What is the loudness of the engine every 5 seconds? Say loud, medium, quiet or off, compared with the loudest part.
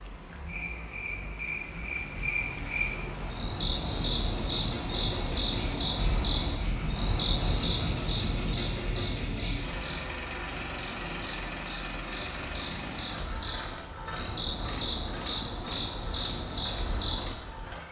medium, loud, loud, medium.